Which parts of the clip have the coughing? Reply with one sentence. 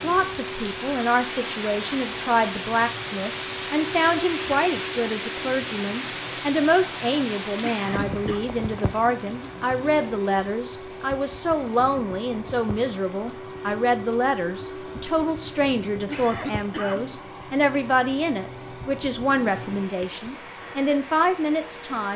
The coughing can be heard from 7.5 to 8.4 s and from 16.0 to 17.1 s.